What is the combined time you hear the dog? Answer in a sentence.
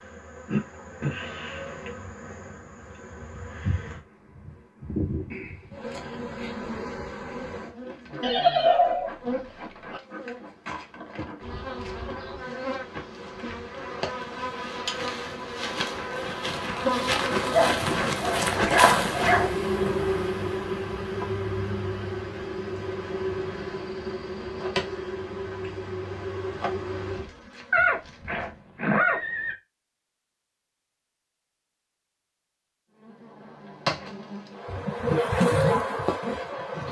The dog can be heard for 2 seconds in total.